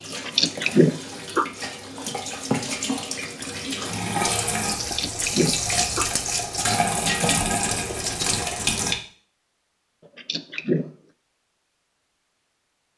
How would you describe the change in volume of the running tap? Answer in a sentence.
The volume of the running tap goes up.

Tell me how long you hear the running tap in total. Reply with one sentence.
You can hear the running tap for 9 seconds altogether.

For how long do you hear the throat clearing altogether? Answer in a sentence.
You can hear the throat clearing for 3 seconds altogether.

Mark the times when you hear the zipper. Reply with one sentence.
The zipper can't be heard in this clip.